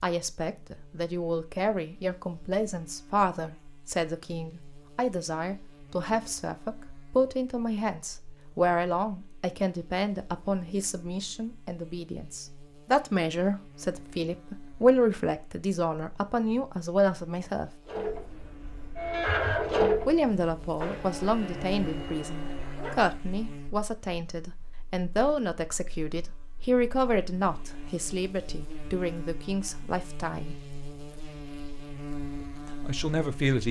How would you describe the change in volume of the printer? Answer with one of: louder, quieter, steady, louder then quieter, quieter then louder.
louder then quieter.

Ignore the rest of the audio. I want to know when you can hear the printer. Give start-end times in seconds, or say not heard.
17.9-23.1.